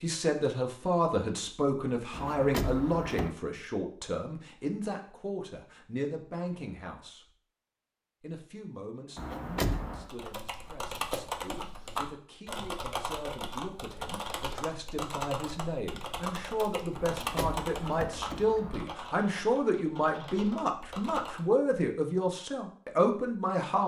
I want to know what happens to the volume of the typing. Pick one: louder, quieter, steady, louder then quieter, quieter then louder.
quieter.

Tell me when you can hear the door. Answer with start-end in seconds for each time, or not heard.
2.1-3.4, 9.2-10.1, 16.9-18.9.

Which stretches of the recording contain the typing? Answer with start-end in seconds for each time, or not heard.
10.1-21.4.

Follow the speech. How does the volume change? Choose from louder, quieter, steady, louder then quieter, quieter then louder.
quieter then louder.